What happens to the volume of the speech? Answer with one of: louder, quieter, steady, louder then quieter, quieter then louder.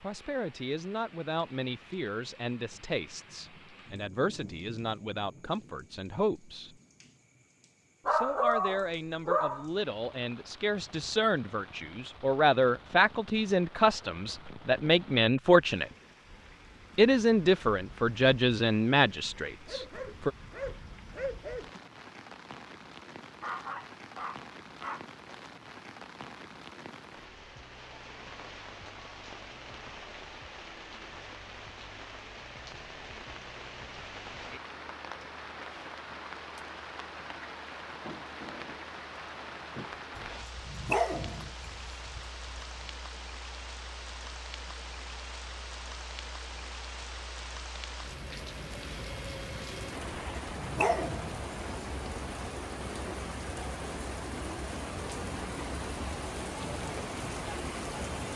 louder.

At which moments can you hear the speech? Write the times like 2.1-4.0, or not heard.
0.0-6.8, 8.1-15.9, 16.9-20.3.